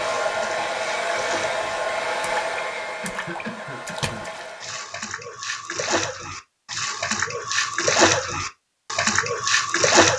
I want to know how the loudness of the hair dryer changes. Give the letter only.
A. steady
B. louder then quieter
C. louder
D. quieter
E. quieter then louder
D.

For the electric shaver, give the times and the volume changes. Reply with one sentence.
The electric shaver can't be heard in this clip.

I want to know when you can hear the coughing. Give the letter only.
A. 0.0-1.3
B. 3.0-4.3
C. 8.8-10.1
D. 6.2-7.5
B.